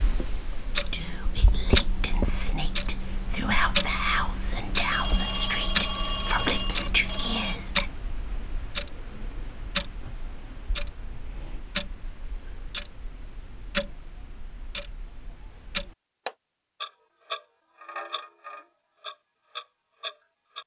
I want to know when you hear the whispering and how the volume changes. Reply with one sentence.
You can hear the whispering from 0.7 to 7.8 s, getting louder.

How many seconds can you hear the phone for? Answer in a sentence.
You can hear the phone for 3 seconds altogether.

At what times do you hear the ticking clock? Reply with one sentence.
You can hear the ticking clock from 0.0 to 20.6 s.